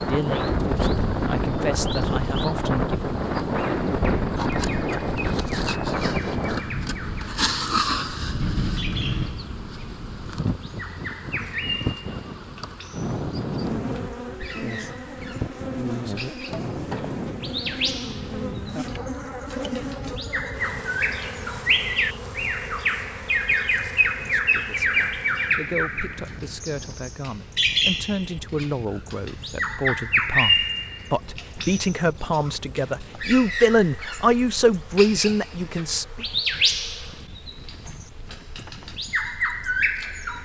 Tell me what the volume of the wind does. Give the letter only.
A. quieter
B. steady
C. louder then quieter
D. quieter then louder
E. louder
A.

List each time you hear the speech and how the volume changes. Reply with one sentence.
You can hear the speech briefly from 0.1 to 0.6 s; briefly from 1.2 to 3.1 s; and from 24.2 to 36.2 s, getting louder.